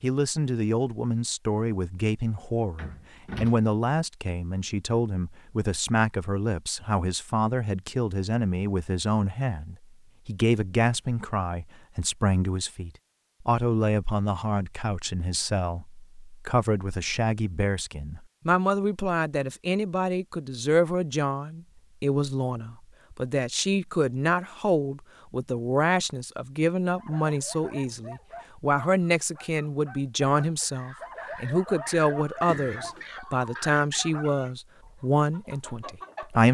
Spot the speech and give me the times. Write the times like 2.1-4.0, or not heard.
0.0-36.4.